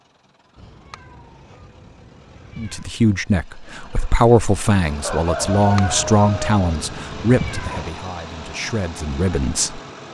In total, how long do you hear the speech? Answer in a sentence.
The speech can be heard for 7 seconds in total.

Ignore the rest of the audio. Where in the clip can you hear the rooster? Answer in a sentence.
You can hear the rooster from 5.0 to 6.5 s.